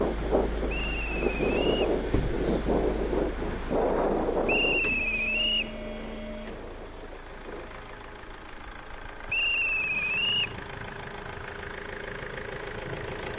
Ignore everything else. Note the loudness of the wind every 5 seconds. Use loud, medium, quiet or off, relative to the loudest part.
loud, quiet, quiet.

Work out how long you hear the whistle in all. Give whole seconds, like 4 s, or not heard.
4 s.